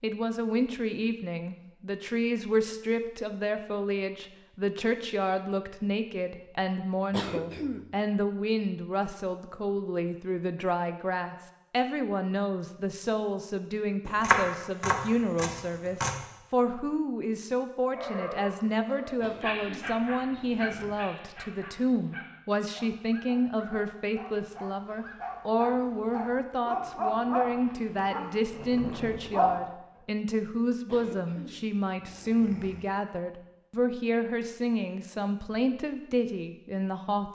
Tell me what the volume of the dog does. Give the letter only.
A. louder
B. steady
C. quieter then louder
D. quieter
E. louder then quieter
C.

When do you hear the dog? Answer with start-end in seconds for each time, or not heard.
17.9-29.6.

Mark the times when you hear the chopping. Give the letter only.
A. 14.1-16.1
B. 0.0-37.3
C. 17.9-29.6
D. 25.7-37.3
A.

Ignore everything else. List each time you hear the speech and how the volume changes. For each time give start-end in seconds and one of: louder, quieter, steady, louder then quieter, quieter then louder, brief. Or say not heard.
0.0-37.3 steady.